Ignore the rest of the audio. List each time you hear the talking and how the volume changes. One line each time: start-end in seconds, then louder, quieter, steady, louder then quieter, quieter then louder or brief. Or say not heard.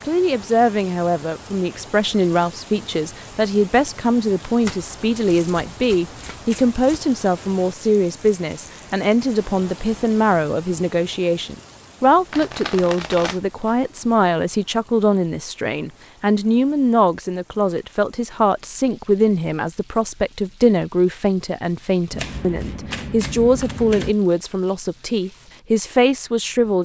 0.1-26.8 steady.